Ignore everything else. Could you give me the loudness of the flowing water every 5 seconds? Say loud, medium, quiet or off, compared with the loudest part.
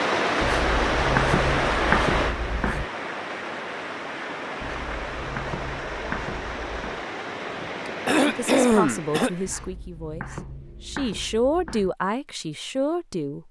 loud, medium, off.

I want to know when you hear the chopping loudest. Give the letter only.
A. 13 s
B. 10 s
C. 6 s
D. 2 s
D.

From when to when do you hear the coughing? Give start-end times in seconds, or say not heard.
8.1-9.3.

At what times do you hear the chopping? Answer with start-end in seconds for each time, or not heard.
0.4-2.9, 4.6-7.0, 9.4-11.9.